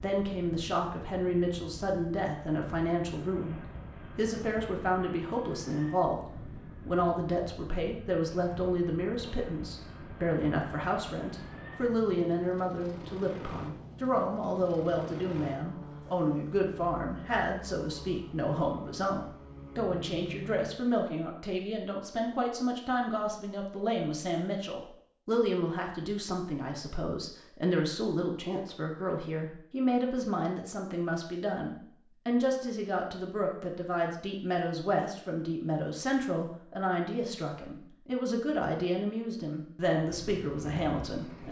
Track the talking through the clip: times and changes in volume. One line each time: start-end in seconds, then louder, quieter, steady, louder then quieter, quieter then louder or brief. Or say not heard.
0.0-6.2 steady
6.8-41.4 steady.